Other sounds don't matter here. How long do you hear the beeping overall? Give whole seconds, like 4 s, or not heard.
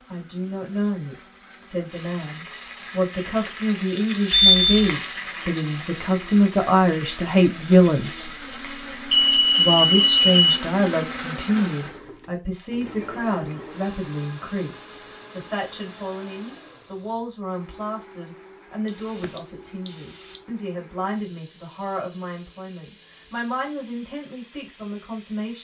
4 s.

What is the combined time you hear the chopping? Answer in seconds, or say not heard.
not heard.